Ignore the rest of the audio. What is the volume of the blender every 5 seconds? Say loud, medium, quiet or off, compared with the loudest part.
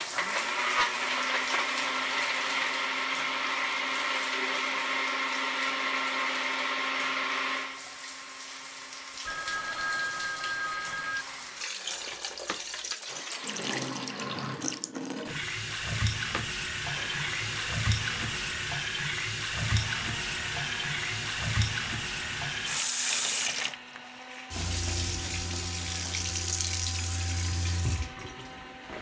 loud, loud, quiet, quiet, quiet, quiet.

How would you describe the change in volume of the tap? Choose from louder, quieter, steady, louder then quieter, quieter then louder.
louder.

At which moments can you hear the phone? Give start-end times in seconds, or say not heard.
9.2-11.2.